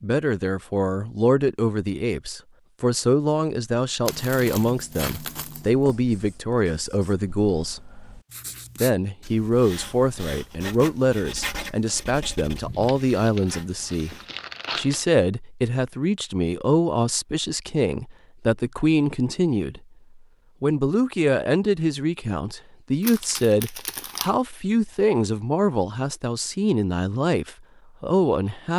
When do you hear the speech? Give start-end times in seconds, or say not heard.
0.0-7.9, 8.8-14.2, 14.8-19.8, 20.6-28.7.